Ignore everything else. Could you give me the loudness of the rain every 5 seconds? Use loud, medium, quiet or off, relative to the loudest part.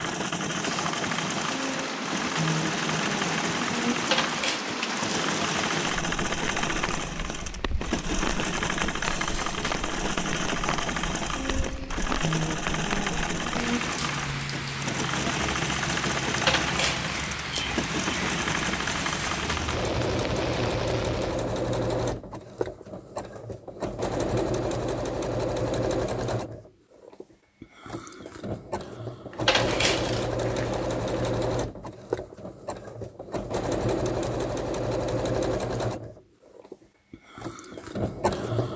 loud, loud, loud, loud, loud, off, off, off.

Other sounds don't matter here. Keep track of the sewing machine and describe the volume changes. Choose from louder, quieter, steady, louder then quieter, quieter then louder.
steady.